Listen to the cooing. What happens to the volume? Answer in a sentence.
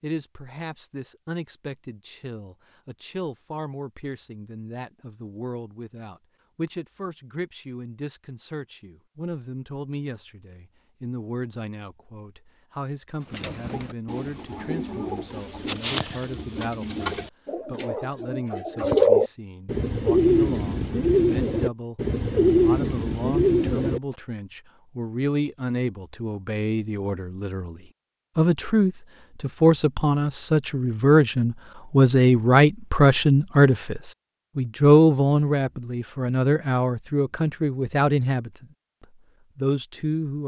The loudness of the cooing goes up.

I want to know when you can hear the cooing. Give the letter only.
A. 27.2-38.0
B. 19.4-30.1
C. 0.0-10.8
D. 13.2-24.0
D.